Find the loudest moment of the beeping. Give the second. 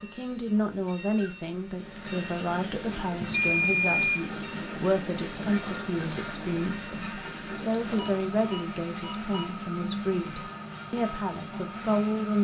4 s.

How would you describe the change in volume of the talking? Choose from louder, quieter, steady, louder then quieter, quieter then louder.
steady.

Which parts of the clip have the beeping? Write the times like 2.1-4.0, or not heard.
3.3-4.2, 8.0-9.4.